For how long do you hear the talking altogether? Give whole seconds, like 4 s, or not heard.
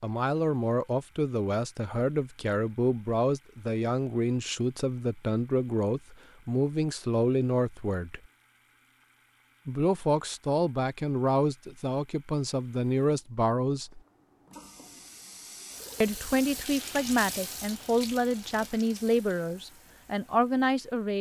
18 s.